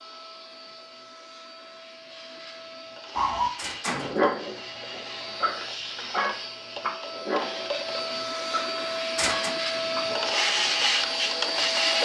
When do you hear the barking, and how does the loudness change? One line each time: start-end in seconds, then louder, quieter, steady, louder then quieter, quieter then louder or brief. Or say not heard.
3.1-11.6 quieter.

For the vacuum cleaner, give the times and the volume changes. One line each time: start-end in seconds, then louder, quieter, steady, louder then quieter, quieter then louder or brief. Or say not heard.
0.0-11.9 louder.